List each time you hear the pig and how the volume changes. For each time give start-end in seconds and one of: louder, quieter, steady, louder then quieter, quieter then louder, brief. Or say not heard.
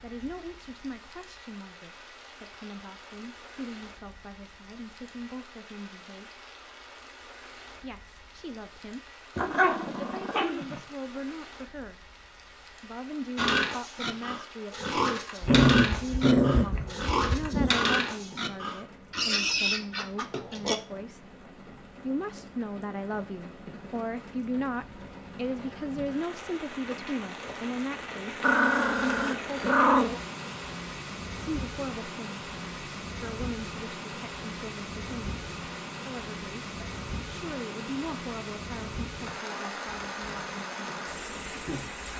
13.3-20.8 steady
39.9-41.9 brief.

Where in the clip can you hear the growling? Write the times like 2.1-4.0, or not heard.
9.3-10.8, 15.4-17.8, 28.4-30.2.